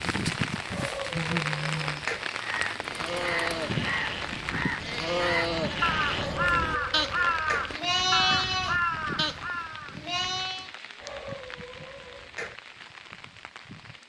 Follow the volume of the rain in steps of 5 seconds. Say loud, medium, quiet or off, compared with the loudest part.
loud, medium, quiet.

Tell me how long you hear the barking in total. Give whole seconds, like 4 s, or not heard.
5 s.